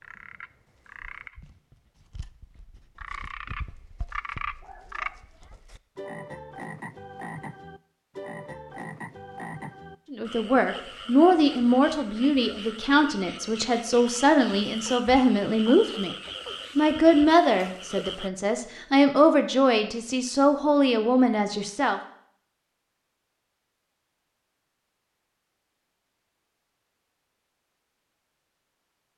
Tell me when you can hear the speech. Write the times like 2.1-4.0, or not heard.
10.1-16.1, 16.8-22.0.